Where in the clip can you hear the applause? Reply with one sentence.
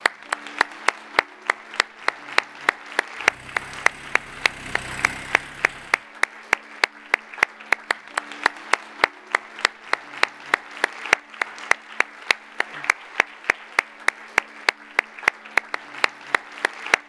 The applause can be heard from 0.0 to 17.0 s.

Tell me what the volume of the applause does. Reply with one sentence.
The volume of the applause stays about the same.